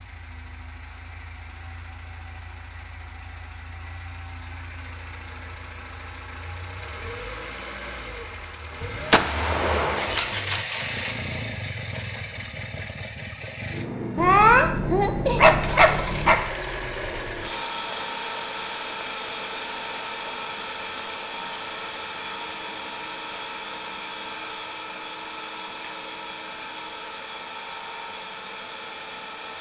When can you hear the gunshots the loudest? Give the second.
9 s.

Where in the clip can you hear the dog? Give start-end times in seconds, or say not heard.
14.2-16.4.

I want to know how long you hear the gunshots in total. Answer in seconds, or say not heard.
2 s.